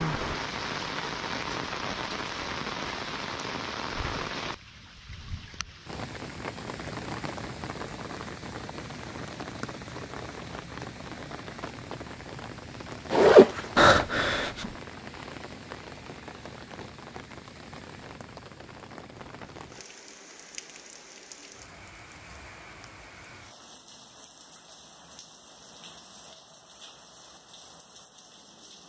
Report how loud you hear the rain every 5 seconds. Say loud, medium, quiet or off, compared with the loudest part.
loud, medium, medium, medium, quiet, quiet.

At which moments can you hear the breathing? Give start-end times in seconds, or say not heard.
13.8-14.7.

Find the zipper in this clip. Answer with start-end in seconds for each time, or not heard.
13.1-14.1.